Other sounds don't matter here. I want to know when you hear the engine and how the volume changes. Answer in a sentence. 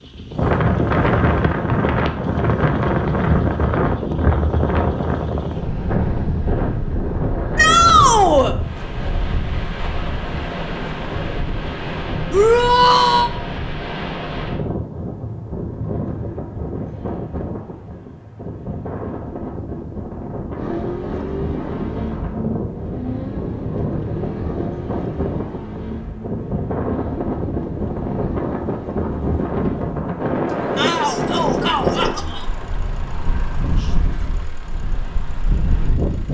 The engine can be heard from 20.6 to 36.2 s, getting quieter.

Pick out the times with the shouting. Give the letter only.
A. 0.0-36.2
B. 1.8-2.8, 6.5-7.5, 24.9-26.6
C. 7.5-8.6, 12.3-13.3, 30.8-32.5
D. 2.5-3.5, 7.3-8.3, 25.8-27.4
C.